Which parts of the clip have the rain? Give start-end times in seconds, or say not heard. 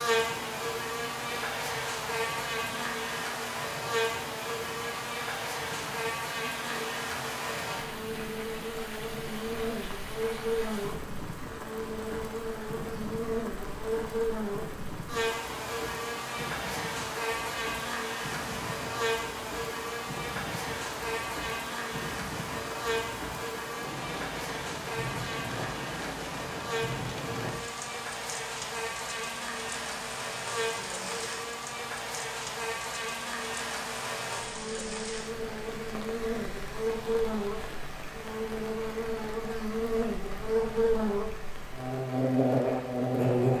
0.0-43.5.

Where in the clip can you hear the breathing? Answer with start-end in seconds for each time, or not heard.
not heard.